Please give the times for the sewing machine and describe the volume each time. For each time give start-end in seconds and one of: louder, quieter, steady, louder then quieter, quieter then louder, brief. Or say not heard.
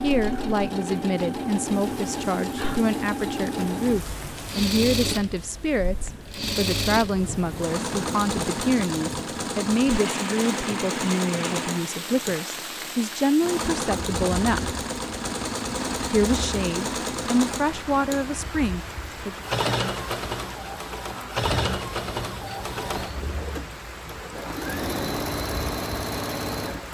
0.0-26.8 steady.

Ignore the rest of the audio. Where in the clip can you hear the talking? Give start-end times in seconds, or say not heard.
0.0-14.8, 16.1-19.4.